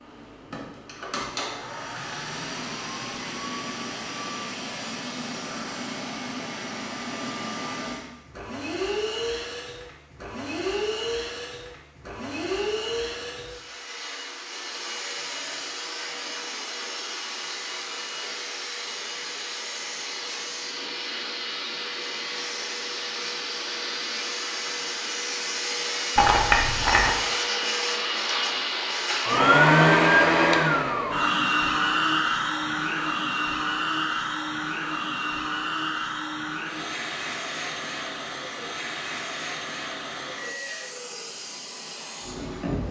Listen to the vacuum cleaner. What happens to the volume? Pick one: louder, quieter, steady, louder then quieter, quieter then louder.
louder then quieter.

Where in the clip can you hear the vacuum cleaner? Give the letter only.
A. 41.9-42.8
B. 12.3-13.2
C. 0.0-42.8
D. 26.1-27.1
C.